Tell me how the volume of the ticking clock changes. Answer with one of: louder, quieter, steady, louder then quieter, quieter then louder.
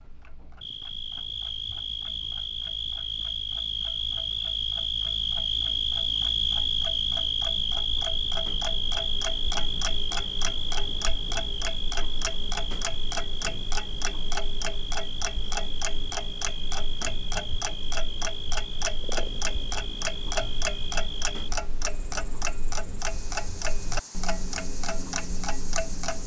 louder.